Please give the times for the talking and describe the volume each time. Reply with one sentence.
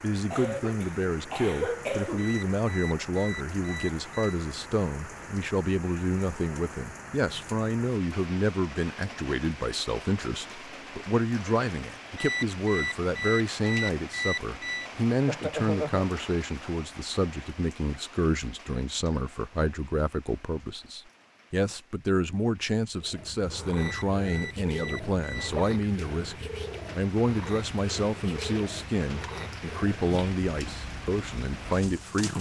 You can hear the talking from 0.0 to 32.3 s, at a steady volume.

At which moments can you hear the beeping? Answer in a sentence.
You can hear the beeping from 2.1 to 4.3 s, from 12.2 to 14.9 s and from 23.8 to 25.5 s.